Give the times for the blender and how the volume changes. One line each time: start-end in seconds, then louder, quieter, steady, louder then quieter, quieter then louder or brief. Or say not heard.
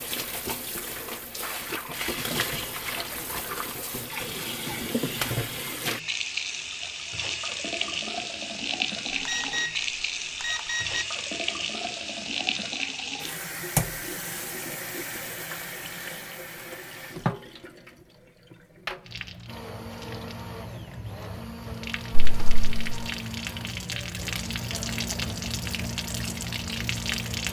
19.4-27.4 steady.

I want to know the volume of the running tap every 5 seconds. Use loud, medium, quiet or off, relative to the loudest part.
loud, loud, loud, medium, medium, loud.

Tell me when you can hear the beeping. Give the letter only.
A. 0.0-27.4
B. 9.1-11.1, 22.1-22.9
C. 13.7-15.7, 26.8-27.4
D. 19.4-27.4
B.